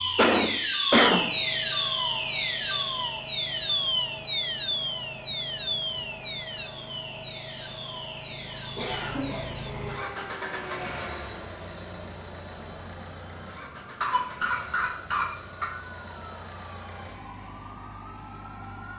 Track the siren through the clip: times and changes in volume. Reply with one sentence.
You can hear the siren from 0.0 to 18.9 s, getting quieter.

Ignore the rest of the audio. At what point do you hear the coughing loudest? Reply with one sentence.
The volume of the coughing peaks at 1 second.